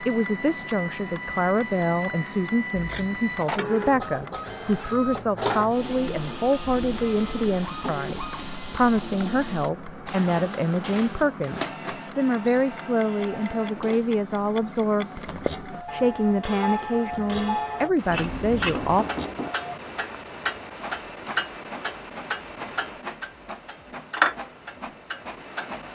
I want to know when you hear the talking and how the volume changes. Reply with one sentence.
The talking can be heard from 0.0 to 19.1 s, at a steady volume.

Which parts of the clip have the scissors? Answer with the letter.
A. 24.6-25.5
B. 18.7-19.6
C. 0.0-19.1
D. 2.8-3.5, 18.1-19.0
D.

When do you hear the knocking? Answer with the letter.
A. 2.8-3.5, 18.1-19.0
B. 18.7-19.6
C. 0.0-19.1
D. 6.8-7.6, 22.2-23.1
B.